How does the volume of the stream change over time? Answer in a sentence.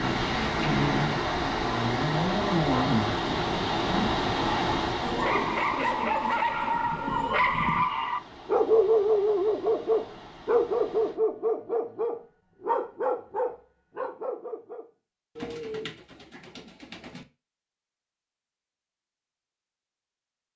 The loudness of the stream goes down.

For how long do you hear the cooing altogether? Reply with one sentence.
You can hear the cooing for 5 seconds altogether.